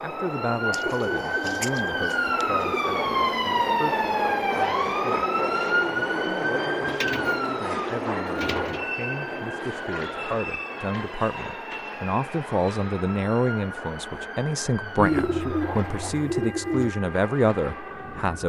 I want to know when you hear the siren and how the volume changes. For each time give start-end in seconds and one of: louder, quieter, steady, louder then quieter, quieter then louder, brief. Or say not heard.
0.0-18.4 quieter.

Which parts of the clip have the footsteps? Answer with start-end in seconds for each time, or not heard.
not heard.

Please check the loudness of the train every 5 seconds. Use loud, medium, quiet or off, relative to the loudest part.
loud, loud, medium, medium.